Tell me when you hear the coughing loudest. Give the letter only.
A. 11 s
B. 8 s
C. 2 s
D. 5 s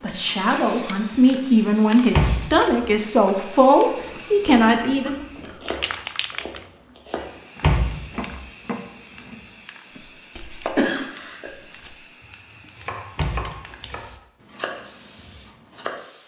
A.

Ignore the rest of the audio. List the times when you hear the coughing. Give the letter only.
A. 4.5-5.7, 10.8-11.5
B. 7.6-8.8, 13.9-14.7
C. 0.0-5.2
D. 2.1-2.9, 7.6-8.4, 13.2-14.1
A.